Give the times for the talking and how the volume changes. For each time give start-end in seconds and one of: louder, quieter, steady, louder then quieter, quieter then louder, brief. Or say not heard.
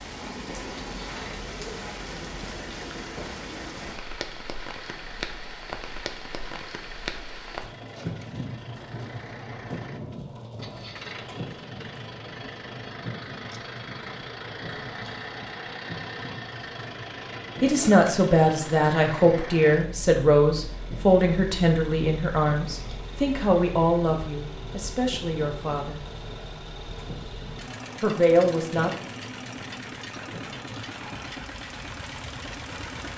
17.6-26.1 quieter
28.0-28.9 brief.